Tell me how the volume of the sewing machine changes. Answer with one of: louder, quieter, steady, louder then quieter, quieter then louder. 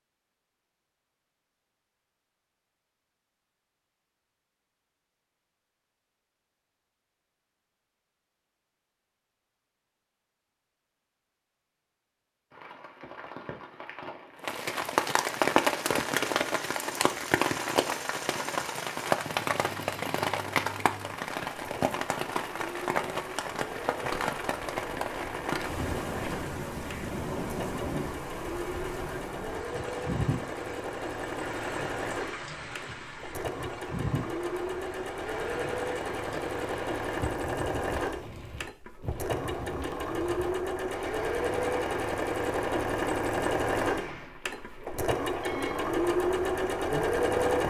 louder.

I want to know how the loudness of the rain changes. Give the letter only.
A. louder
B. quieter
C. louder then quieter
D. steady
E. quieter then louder
B.